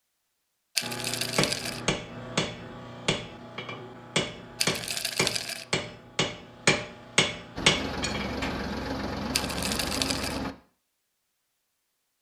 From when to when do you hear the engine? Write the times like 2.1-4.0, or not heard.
7.5-10.6.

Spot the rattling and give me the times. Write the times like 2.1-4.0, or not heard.
0.8-1.8, 4.5-5.7, 9.3-10.4.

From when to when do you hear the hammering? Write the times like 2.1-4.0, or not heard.
0.8-8.7.